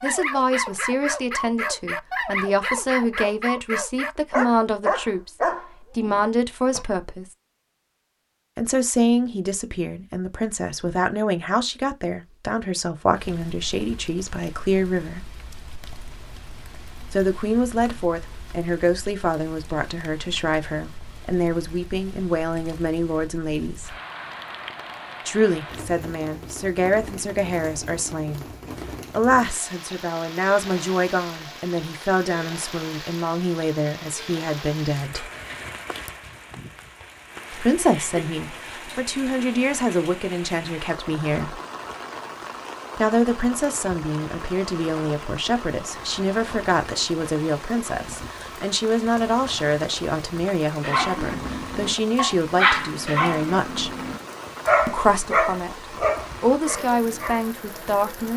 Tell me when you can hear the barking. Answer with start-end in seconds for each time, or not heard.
0.0-6.8, 50.8-57.4.